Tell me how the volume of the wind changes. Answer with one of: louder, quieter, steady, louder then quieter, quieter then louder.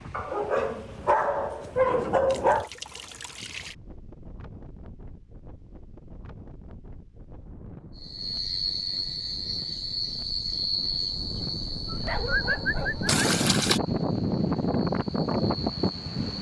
louder.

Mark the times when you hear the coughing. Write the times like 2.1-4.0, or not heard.
not heard.